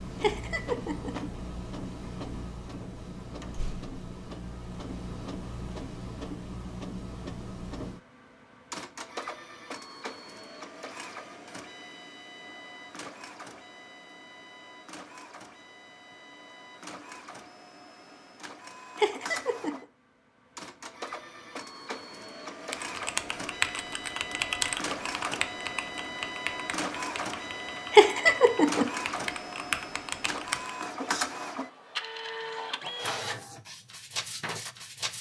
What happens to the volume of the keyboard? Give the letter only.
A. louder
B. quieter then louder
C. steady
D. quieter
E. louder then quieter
B.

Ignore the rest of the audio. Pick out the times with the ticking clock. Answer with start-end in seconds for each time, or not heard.
not heard.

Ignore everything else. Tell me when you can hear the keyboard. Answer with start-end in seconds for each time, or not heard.
22.7-30.7.